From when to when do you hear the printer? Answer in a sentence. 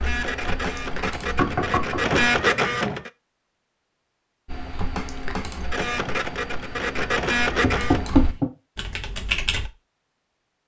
The printer can be heard from 0.0 to 3.1 s and from 5.6 to 8.1 s.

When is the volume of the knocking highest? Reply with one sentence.
The loudest moment of the knocking is at 8 seconds.